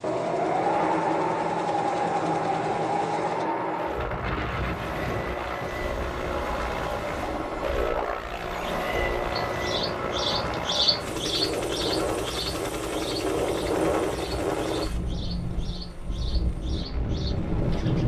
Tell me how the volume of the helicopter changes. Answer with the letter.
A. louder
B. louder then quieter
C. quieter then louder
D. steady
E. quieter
B.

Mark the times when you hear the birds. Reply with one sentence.
The birds can be heard from 8.5 to 18.0 s.